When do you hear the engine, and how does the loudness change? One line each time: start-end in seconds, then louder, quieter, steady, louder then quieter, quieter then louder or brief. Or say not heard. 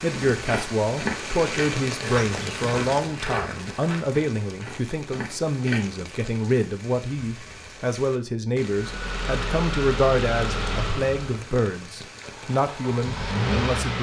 8.8-13.9 quieter then louder.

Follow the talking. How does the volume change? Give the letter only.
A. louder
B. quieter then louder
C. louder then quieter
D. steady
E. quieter
D.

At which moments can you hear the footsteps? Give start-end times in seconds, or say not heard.
0.1-5.9.